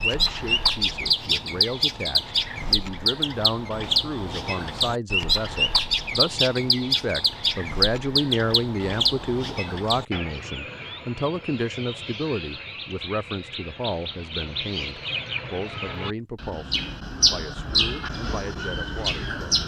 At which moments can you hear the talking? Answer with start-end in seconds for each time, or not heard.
0.0-19.6.